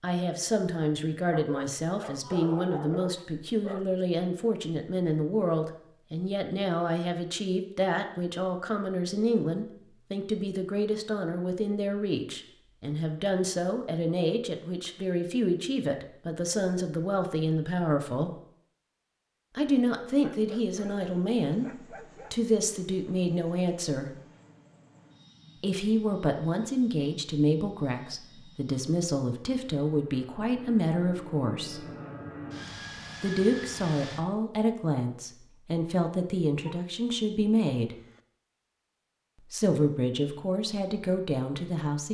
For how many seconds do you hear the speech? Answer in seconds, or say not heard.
37 s.